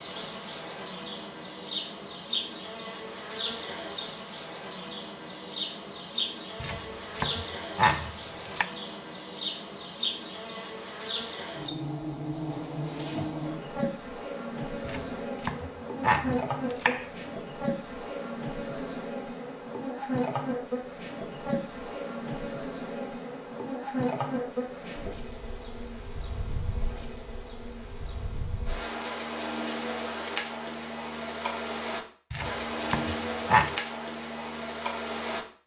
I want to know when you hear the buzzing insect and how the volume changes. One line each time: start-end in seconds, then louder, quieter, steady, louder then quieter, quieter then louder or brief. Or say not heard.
0.0-35.4 steady.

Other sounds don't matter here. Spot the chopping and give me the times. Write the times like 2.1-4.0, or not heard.
6.6-8.7, 14.8-17.1, 32.3-33.8.